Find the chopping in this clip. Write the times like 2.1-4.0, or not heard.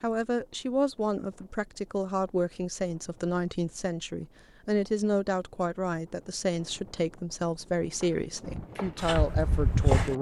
7.8-10.1.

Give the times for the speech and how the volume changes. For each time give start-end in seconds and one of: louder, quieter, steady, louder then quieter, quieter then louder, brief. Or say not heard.
0.0-10.1 steady.